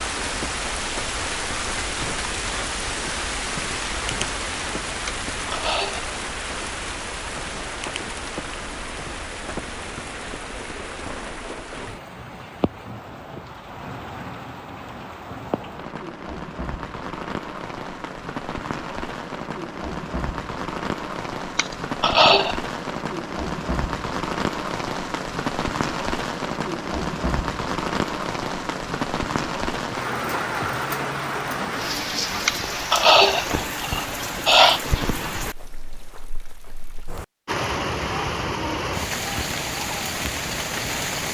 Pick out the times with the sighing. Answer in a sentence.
The sighing can be heard from 5.0 to 6.0 s, from 21.6 to 22.6 s and from 32.5 to 34.8 s.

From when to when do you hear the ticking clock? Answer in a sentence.
You can't hear the ticking clock here.